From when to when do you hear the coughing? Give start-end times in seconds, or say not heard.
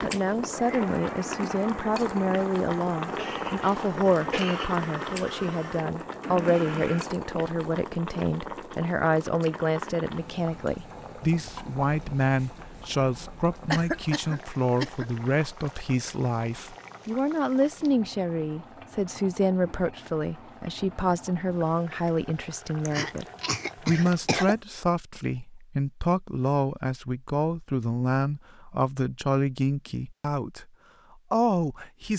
3.1-4.7, 13.7-15.1, 22.9-24.6.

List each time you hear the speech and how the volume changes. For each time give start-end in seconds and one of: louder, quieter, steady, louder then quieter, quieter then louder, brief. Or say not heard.
0.0-30.6 steady
31.3-32.1 brief.